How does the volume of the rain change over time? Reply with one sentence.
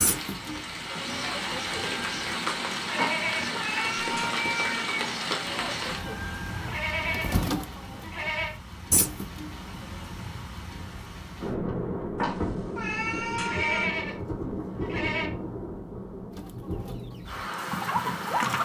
The volume of the rain goes down, then up.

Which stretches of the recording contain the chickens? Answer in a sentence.
You can hear the chickens from 0.0 to 2.4 s, from 5.3 to 9.8 s and from 16.4 to 18.5 s.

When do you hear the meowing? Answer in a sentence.
You can hear the meowing from 3.0 to 5.0 s and from 12.2 to 13.9 s.